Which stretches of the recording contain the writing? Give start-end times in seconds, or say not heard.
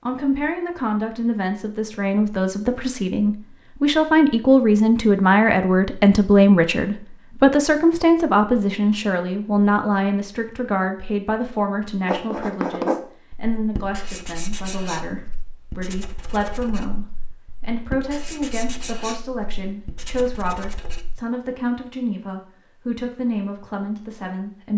12.0-21.2.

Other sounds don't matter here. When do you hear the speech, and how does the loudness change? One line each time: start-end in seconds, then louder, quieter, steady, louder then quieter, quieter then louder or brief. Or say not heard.
0.1-24.7 quieter.